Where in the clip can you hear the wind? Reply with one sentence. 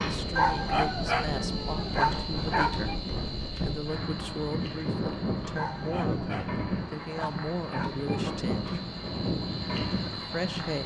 The wind can be heard from 0.0 to 10.8 s.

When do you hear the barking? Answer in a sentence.
The barking can be heard from 0.3 to 3.0 s and from 5.5 to 8.3 s.